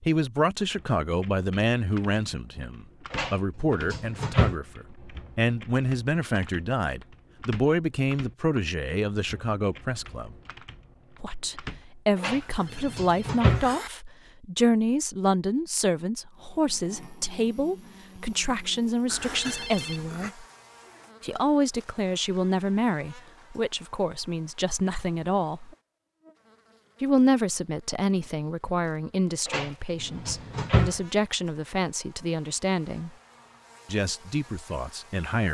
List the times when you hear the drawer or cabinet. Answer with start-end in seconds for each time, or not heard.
3.1-4.5, 12.2-13.7, 29.4-31.0.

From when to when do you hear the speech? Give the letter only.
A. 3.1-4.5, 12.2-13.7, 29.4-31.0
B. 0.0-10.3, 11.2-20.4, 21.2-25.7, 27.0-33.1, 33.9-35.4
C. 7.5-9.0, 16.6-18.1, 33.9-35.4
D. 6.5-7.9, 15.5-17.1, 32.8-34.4
B.